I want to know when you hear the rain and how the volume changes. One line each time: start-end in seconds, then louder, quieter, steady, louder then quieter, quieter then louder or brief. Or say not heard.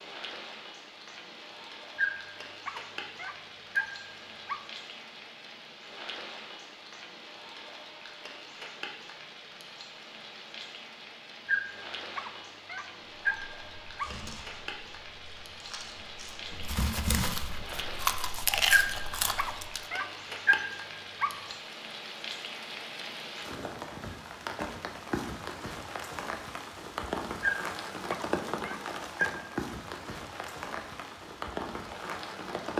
0.0-32.7 louder.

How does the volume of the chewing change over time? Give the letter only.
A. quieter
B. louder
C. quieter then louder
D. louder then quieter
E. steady
B.